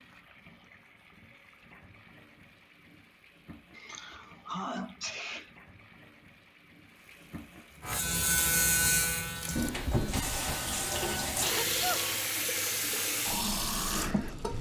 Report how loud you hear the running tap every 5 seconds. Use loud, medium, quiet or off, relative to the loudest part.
quiet, medium, loud.